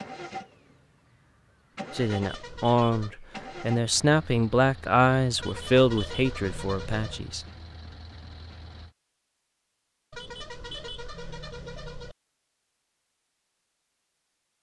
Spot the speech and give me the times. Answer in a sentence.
The speech can be heard from 1.9 to 7.5 s.